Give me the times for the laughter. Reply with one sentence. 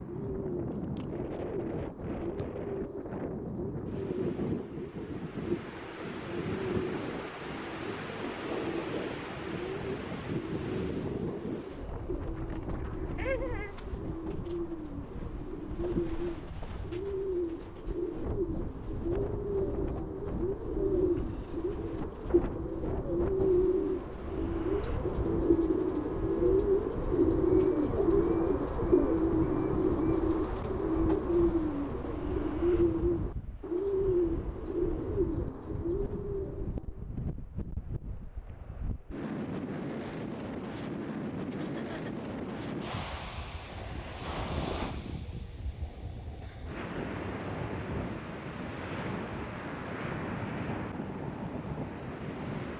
You can hear the laughter from 13.2 to 13.8 s and from 41.5 to 42.3 s.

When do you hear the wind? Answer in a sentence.
The wind can be heard from 0.0 to 52.7 s.